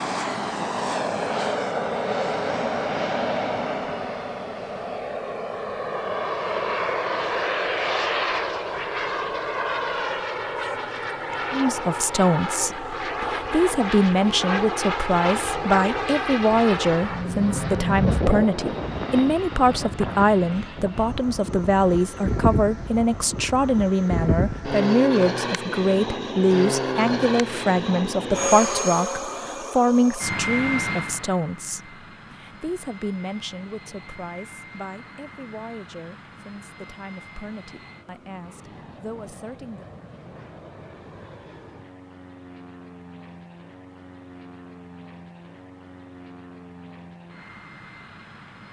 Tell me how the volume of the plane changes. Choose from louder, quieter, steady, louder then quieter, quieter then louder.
quieter.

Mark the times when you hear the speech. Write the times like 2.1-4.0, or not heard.
11.5-39.9.